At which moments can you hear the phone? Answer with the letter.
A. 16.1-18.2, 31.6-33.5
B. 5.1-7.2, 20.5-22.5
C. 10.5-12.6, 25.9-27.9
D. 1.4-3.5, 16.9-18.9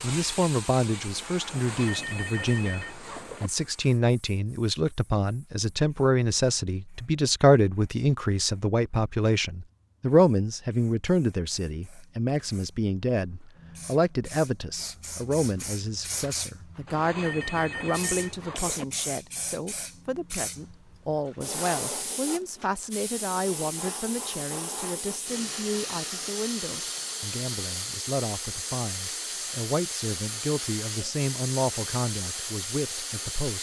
D.